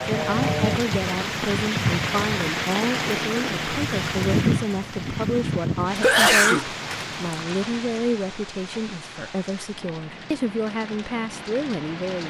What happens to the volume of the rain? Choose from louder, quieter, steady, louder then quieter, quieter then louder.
quieter.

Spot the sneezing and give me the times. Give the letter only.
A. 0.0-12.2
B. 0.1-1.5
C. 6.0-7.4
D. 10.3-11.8
C.